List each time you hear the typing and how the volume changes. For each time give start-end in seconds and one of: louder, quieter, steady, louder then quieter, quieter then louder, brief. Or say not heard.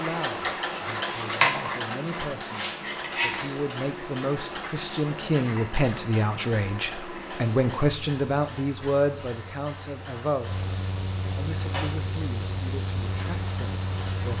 not heard.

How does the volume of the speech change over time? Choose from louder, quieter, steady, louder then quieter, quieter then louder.
louder then quieter.